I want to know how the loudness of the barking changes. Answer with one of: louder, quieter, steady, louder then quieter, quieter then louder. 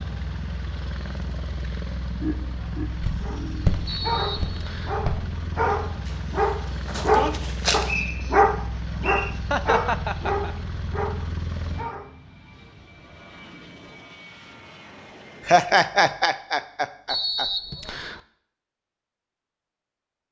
louder then quieter.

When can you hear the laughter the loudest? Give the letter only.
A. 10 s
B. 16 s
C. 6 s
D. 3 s
B.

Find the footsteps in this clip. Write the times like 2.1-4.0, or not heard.
3.0-8.0.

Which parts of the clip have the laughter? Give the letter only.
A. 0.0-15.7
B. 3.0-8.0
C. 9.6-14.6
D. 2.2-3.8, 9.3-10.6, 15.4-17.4
D.